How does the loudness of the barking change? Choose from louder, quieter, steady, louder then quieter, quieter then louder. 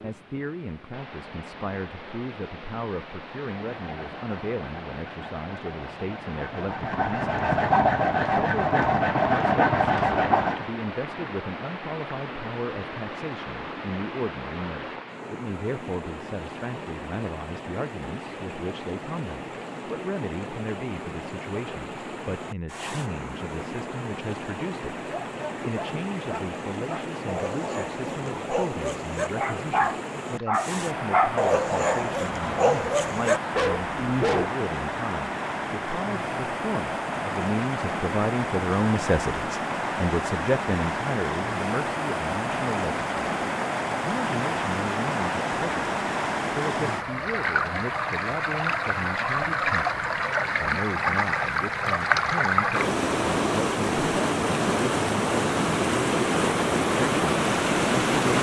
louder.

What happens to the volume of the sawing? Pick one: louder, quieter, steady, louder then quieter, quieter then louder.
louder.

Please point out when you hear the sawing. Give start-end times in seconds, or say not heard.
3.6-10.7.